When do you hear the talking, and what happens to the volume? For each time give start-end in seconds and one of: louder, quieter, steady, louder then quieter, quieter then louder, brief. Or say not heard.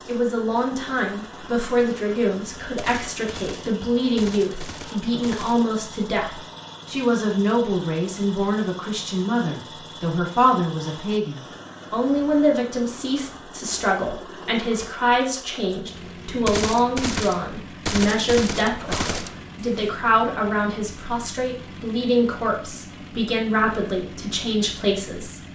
0.0-25.4 steady.